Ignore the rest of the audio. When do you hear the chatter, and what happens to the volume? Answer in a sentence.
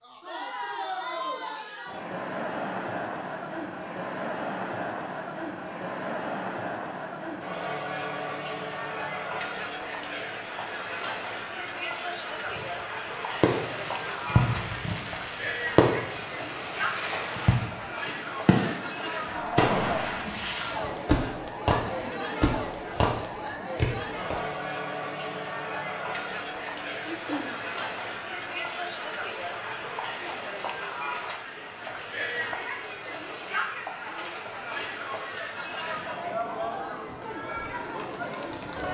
You can hear the chatter from 0.0 to 38.8 s, at a steady volume.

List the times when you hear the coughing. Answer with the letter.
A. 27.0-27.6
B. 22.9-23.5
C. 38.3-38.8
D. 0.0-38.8
A.